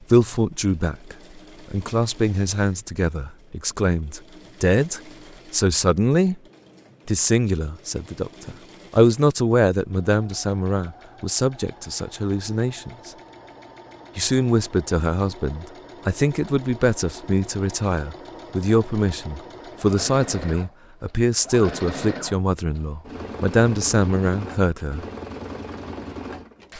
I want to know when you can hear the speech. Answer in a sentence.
You can hear the speech from 0.1 to 6.4 s, from 7.0 to 13.1 s and from 14.2 to 25.1 s.